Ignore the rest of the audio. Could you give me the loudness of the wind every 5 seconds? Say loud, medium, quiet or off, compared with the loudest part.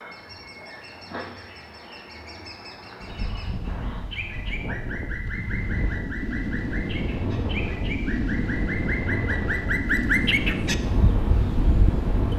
medium, loud, loud.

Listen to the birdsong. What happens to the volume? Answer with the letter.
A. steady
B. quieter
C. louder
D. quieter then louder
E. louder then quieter
C.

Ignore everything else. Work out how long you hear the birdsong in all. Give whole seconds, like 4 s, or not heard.
12 s.